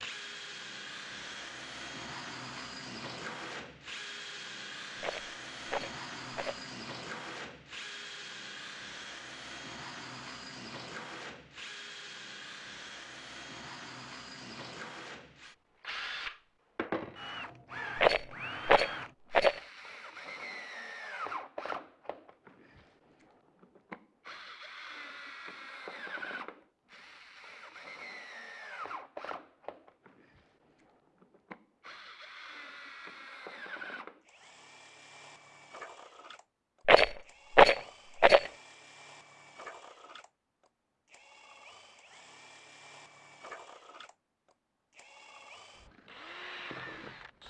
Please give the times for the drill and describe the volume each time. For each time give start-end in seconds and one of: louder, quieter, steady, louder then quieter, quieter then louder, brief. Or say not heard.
0.0-47.4 quieter.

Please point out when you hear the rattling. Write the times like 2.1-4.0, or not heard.
5.0-6.7, 17.9-19.6, 36.9-38.5.